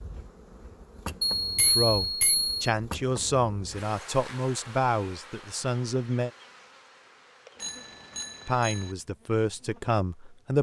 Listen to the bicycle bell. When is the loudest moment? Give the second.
2 s.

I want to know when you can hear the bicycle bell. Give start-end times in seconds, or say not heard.
1.4-2.5, 7.5-8.9.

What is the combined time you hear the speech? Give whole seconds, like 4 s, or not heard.
7 s.